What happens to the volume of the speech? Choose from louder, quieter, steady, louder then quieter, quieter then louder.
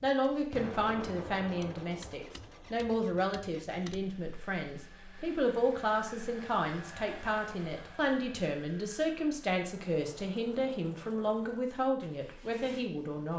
steady.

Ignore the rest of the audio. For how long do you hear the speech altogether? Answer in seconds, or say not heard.
13 s.